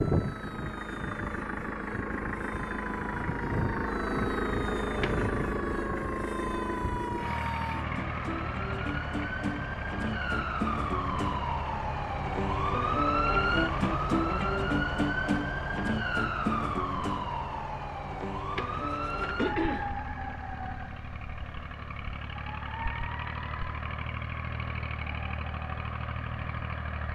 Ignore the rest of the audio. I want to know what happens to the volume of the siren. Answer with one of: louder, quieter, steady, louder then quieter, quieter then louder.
louder then quieter.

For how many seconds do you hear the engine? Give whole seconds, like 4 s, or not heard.
22 s.